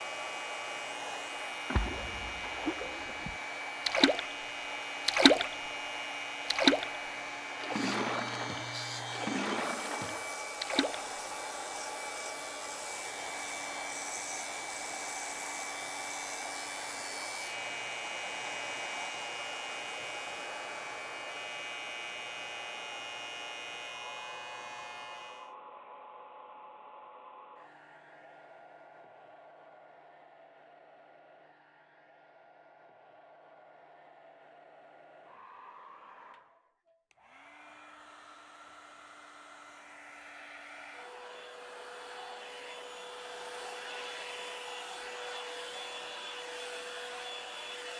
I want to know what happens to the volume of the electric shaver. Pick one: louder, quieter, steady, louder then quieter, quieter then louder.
steady.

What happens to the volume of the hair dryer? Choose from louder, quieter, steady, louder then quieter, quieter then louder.
quieter then louder.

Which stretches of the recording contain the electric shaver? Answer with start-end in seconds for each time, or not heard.
0.0-25.6.